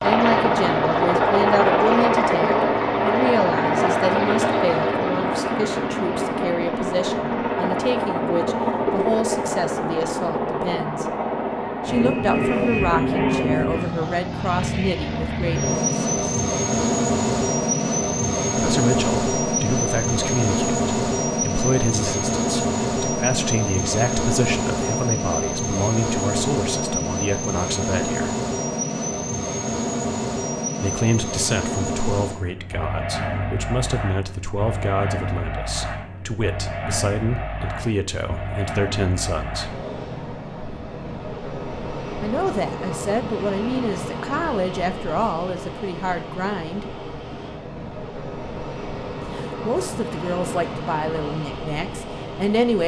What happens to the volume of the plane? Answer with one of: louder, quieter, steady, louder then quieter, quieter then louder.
quieter.